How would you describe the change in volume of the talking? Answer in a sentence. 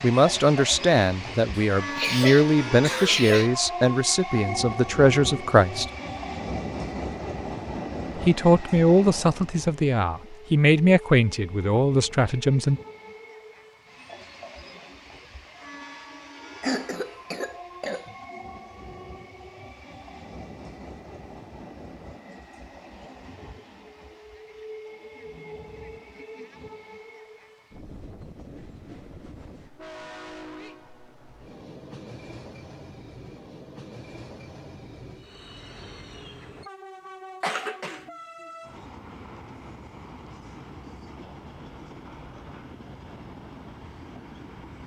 The volume of the talking stays about the same.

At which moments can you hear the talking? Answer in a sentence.
The talking can be heard from 0.0 to 5.8 s and from 8.2 to 12.8 s.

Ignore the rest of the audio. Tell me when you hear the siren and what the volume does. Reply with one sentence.
You can't hear the siren here.